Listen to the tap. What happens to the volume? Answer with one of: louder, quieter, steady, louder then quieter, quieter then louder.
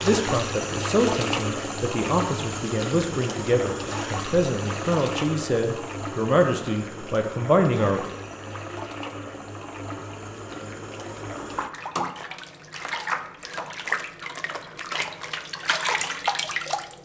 quieter then louder.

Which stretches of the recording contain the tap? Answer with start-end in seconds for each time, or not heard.
0.0-17.0.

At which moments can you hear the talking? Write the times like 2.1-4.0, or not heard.
0.0-8.1.